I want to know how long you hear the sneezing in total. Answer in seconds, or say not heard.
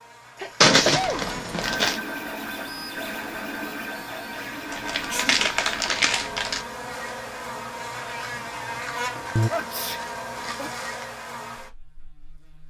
3 s.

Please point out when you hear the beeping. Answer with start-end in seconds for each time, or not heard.
not heard.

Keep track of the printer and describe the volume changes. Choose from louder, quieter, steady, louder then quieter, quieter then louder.
quieter.